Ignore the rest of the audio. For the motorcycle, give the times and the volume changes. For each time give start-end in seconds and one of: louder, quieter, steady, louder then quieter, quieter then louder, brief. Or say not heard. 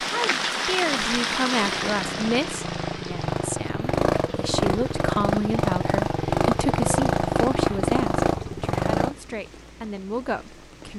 1.6-9.2 louder.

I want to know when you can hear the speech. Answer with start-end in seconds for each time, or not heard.
0.0-10.9.